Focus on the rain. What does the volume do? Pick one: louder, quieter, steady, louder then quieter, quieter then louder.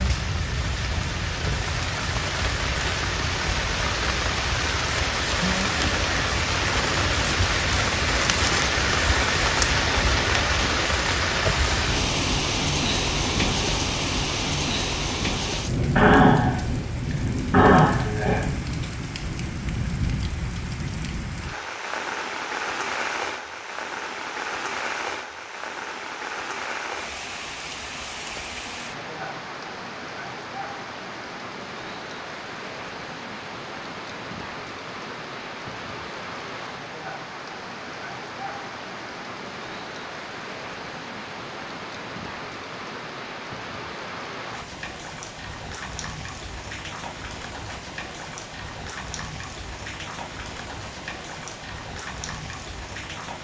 quieter.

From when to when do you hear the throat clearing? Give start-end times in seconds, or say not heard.
15.9-18.4.